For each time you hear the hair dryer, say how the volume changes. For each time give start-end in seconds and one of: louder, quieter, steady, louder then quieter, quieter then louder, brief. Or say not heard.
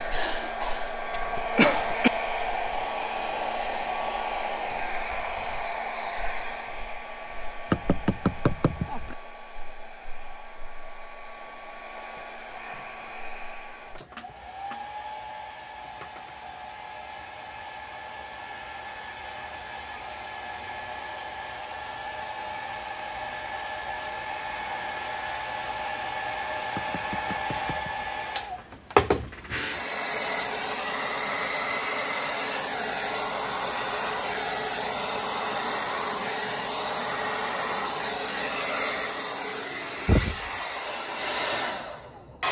0.0-42.4 quieter then louder.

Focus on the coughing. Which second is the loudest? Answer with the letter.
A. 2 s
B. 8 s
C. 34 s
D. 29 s
A.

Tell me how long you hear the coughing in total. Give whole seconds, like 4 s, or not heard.
2 s.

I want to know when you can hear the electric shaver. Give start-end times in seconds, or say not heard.
not heard.